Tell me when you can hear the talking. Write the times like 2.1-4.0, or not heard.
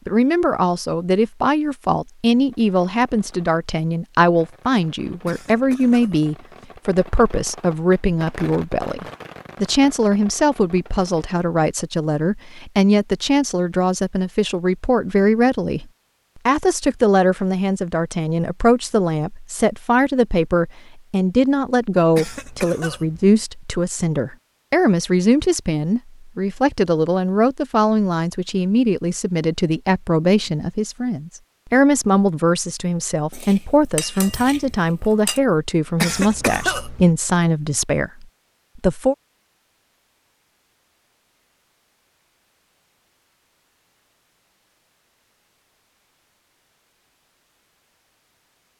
0.1-15.8, 16.4-39.1.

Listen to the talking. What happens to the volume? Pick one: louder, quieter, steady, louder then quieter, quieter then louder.
steady.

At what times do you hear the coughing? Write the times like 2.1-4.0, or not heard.
5.2-6.2, 22.1-23.3, 36.0-37.1.